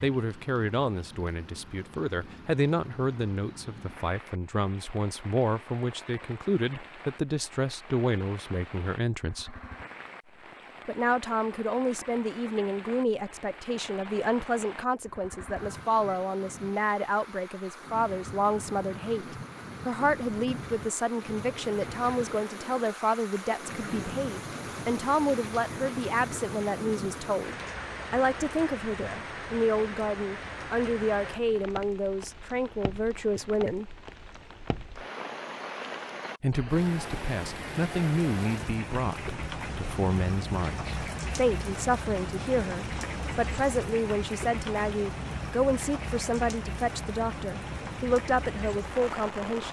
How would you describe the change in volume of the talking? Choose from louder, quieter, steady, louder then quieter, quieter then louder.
steady.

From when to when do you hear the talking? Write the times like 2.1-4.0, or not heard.
0.0-9.6, 10.8-34.0, 36.4-49.6.